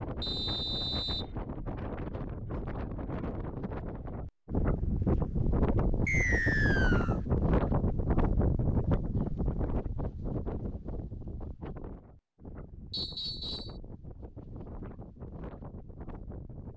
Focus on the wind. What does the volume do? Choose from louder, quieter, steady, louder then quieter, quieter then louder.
louder then quieter.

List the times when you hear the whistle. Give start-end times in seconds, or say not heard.
0.2-1.2, 6.0-7.2, 12.9-13.8.